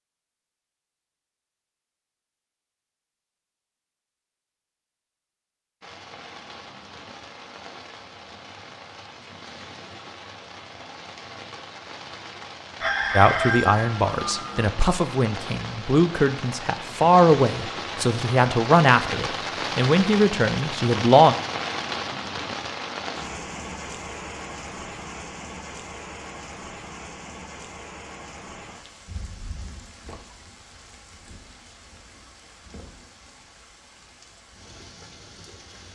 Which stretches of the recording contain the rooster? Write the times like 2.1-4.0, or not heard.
12.8-14.7.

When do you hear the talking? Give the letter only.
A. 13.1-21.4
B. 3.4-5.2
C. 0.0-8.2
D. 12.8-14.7
A.